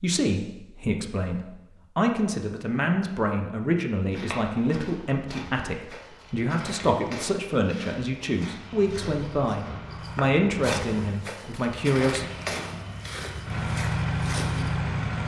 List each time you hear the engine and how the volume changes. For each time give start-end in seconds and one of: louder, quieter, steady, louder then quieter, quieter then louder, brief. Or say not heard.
8.4-15.2 louder.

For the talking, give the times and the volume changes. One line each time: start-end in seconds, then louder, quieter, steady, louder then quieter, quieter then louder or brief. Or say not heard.
0.0-12.3 steady.